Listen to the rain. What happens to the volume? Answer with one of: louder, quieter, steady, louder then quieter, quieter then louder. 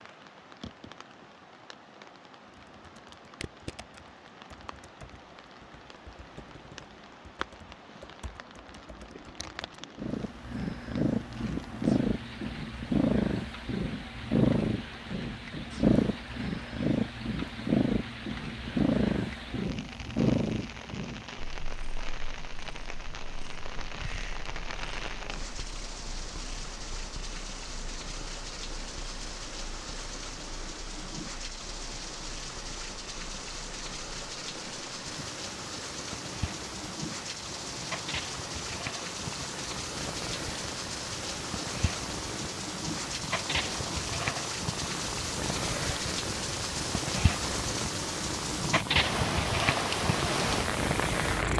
louder.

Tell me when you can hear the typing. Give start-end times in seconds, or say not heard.
2.5-9.8.